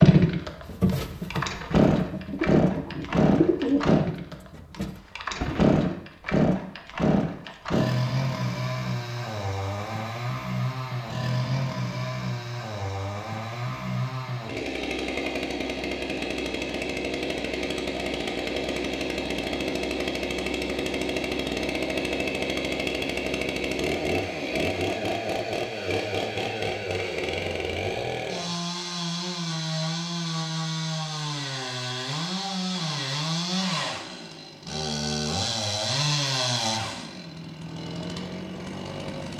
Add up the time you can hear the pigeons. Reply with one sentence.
The pigeons can be heard for 5 seconds in total.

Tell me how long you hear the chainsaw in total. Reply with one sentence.
You can hear the chainsaw for 39 seconds altogether.